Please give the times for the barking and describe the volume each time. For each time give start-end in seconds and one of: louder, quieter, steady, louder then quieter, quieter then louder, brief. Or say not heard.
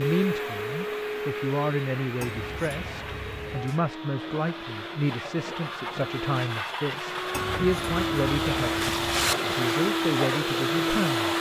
not heard.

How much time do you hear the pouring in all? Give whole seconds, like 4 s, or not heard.
4 s.